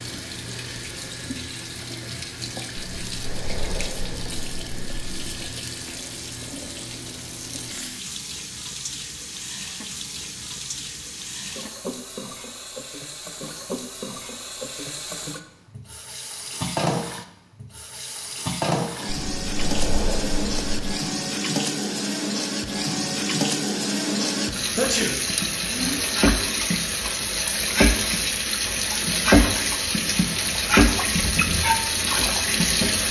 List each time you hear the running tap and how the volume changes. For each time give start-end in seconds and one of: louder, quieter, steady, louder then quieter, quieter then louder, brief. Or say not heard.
0.0-33.0 louder.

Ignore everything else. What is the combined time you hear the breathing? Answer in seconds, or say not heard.
5 s.